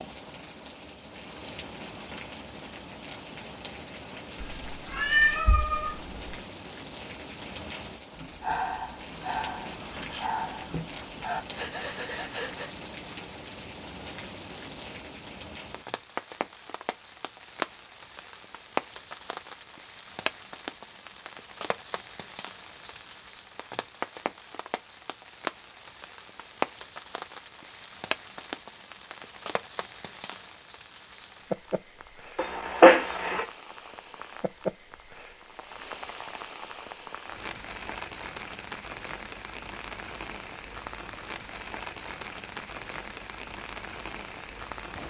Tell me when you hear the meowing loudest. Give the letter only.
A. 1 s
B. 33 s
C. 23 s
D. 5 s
B.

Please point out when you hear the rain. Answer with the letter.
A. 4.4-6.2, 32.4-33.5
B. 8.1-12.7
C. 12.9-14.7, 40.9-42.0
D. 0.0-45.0
D.